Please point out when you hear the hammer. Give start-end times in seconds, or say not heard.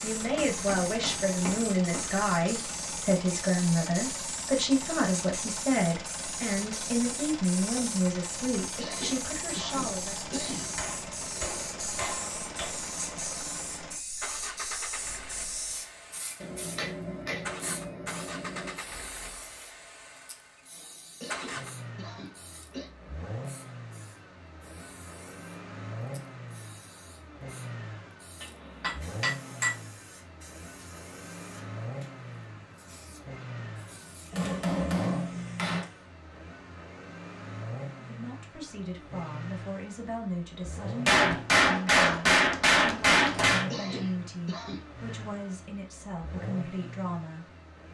0.3-2.0, 10.8-12.7, 16.4-18.8, 28.4-29.8, 34.3-35.9, 41.0-43.7.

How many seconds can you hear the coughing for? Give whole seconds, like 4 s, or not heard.
5 s.